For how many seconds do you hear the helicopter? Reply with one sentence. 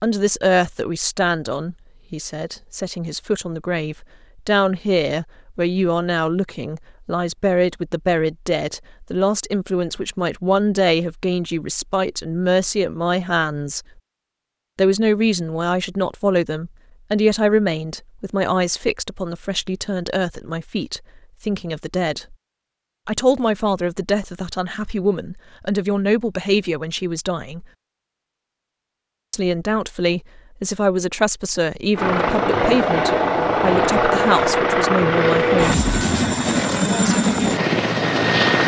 The helicopter can be heard for 7 seconds in total.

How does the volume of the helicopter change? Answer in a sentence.
The volume of the helicopter stays about the same.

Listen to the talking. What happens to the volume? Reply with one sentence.
The volume of the talking stays about the same.